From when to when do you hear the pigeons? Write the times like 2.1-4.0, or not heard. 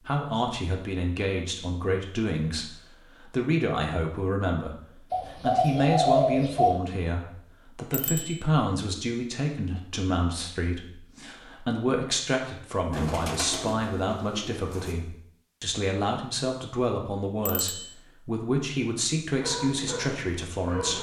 5.1-6.7, 12.9-14.9.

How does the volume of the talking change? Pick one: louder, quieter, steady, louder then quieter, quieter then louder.
steady.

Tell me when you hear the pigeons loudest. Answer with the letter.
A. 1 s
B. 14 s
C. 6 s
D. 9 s
C.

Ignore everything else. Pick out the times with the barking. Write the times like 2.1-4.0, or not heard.
19.3-20.9.